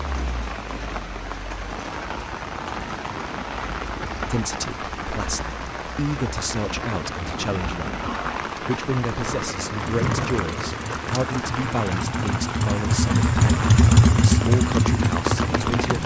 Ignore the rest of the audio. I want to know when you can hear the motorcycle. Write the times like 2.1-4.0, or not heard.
9.8-16.0.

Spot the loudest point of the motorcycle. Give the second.
14 s.